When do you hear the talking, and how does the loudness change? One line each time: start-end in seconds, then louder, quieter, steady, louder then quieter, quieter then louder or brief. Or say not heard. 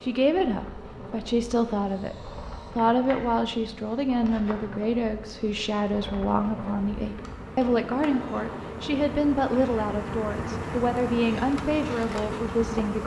0.0-13.0 steady.